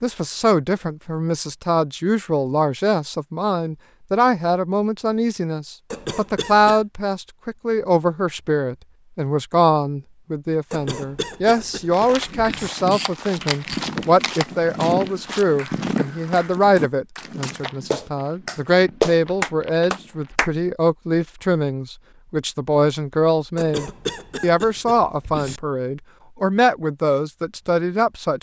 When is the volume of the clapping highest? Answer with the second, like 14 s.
19 s.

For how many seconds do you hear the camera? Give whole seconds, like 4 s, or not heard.
2 s.